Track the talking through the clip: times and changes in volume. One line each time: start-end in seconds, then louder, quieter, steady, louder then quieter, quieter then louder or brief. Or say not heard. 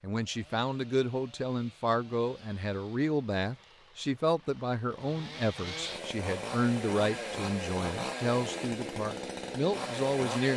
0.0-10.5 steady.